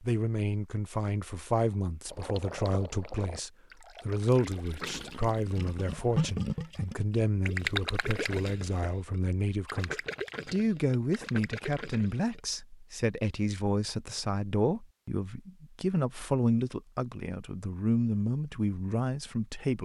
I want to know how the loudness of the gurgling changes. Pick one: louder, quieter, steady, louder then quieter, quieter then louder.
louder then quieter.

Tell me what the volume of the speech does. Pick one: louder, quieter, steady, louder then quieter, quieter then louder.
steady.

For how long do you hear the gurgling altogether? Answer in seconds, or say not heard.
10 s.